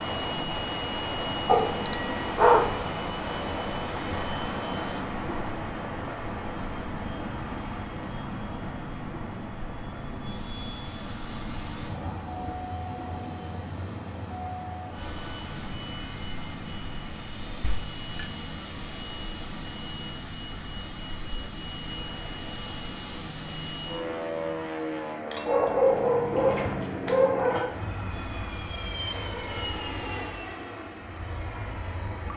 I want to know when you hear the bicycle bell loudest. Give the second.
2 s.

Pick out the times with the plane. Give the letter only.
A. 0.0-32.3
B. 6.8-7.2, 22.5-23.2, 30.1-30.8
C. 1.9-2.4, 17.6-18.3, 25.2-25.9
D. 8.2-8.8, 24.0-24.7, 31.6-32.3
A.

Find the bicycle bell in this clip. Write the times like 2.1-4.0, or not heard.
1.9-2.4, 17.6-18.3, 25.2-25.9.